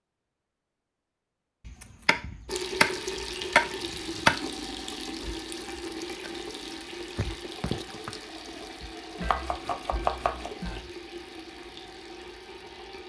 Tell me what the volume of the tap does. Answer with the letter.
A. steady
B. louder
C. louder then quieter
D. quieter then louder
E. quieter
E.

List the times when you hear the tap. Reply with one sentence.
The tap can be heard from 2.5 to 13.0 s.